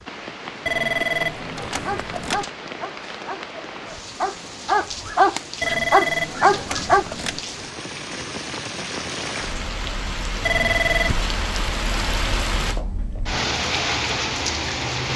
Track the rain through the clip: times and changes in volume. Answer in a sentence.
You can hear the rain from 0.0 to 15.1 s, getting louder.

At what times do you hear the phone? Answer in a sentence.
The phone can be heard from 0.7 to 2.5 s, from 5.6 to 7.4 s and from 10.4 to 11.2 s.